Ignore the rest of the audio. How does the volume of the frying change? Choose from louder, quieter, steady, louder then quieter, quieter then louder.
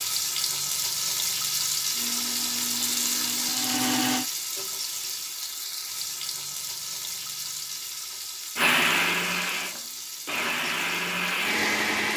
quieter.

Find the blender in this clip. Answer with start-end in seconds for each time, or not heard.
1.9-4.2, 8.6-12.1.